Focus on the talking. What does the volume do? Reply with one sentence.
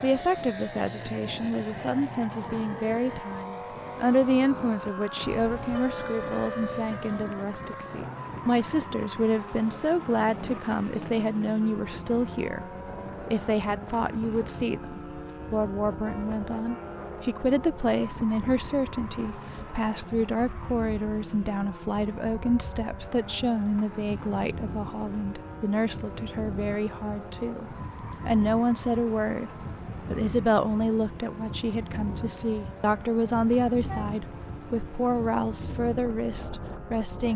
The volume of the talking stays about the same.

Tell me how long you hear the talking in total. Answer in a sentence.
You can hear the talking for 36 seconds altogether.